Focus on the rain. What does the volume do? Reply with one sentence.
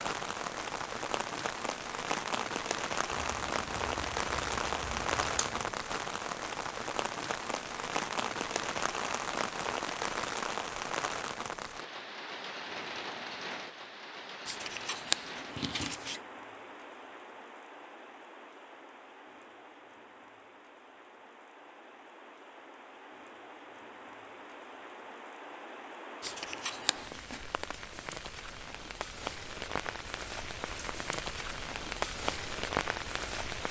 The loudness of the rain goes down, then up.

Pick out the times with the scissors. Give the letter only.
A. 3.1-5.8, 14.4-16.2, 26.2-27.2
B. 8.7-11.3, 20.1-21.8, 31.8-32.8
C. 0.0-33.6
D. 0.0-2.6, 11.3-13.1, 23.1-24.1
A.